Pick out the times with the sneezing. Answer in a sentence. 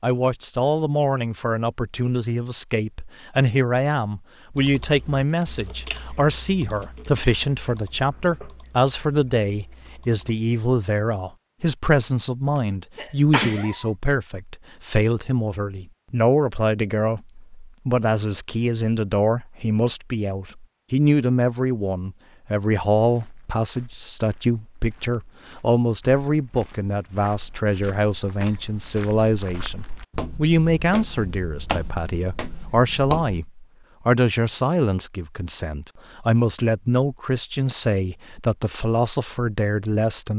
The sneezing can be heard from 12.9 to 13.8 s.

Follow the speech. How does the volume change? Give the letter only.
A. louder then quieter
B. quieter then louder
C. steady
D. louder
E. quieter
C.